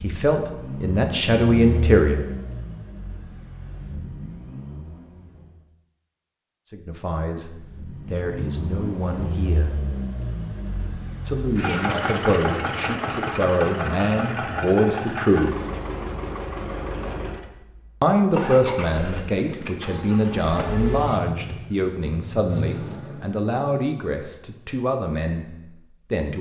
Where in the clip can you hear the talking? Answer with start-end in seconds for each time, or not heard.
0.0-2.2, 6.7-9.8, 11.2-15.6, 18.0-26.3.